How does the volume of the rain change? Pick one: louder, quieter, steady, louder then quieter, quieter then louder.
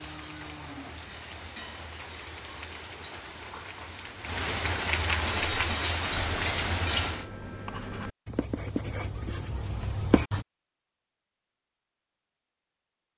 louder.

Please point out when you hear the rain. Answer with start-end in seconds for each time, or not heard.
0.0-7.3.